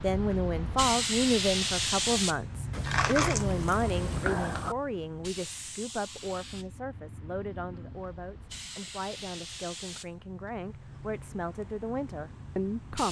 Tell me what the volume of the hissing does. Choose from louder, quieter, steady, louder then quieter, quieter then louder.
quieter.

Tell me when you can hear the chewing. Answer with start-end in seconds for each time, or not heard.
2.7-4.8.